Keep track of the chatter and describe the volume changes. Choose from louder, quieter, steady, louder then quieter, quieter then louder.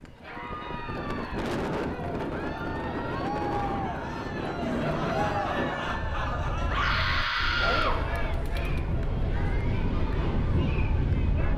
louder then quieter.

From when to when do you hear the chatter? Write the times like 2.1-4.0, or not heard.
0.1-11.5.